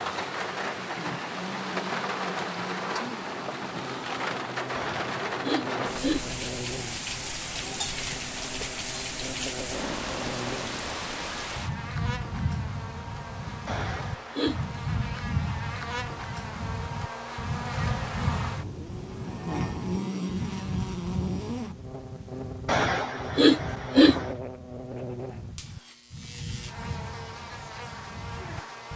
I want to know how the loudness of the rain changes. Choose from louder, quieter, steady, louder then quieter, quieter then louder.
quieter.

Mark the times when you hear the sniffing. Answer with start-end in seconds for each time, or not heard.
4.8-6.4, 13.7-14.7, 22.6-24.3.